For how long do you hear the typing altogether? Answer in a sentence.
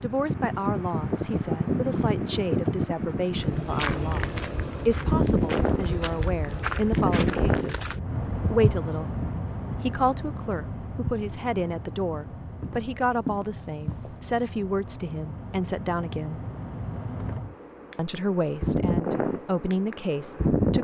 The typing can't be heard in this clip.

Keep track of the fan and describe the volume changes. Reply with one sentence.
The volume of the fan goes down, then up.